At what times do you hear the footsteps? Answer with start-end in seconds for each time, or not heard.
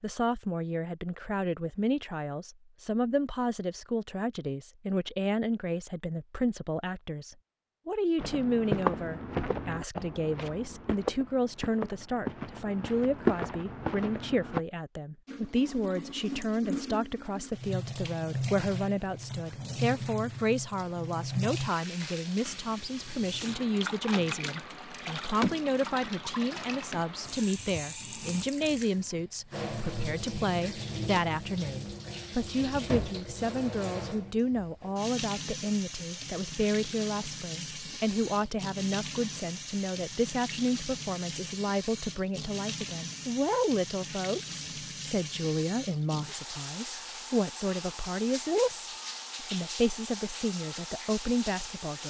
8.2-14.6.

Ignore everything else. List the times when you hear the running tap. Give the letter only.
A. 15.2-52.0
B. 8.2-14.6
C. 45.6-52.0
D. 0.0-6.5
A.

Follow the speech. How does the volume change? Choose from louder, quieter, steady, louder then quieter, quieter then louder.
steady.